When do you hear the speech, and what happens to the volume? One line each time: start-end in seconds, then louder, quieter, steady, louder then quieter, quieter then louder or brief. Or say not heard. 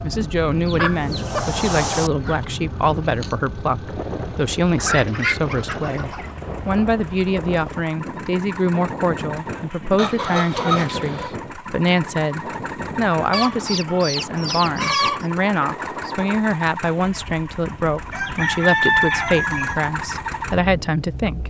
0.0-21.4 steady.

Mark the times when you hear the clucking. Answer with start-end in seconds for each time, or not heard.
0.7-2.5, 4.8-6.3, 9.9-11.3, 13.3-15.2, 18.1-19.8.